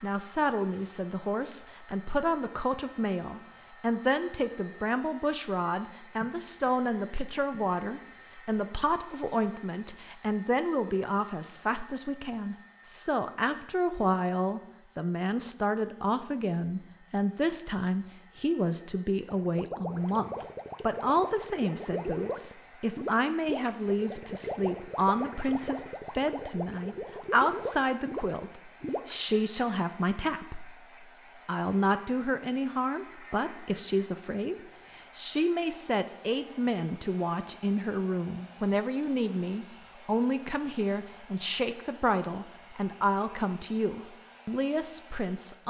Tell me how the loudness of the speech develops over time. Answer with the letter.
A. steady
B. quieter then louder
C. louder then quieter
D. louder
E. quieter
A.